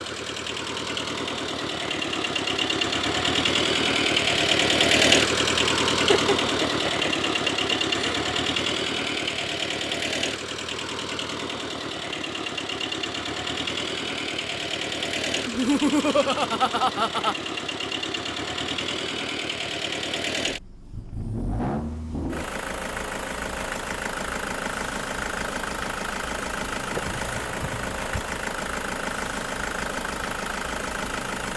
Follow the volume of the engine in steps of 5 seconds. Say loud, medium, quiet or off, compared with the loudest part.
loud, loud, medium, medium, medium, medium, medium.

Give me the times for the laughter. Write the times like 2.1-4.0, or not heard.
6.0-8.2, 15.4-17.4, 26.9-28.4.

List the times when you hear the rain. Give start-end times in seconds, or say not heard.
not heard.